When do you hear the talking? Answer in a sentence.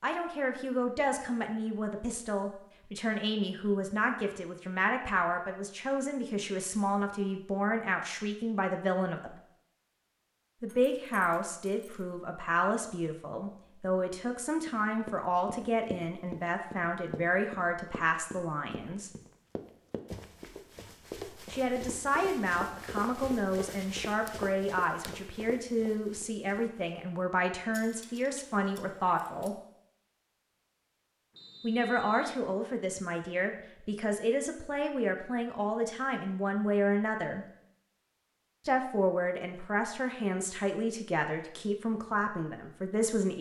You can hear the talking from 0.0 to 9.3 s, from 10.6 to 19.1 s, from 21.5 to 29.6 s, from 31.6 to 37.5 s and from 38.6 to 43.3 s.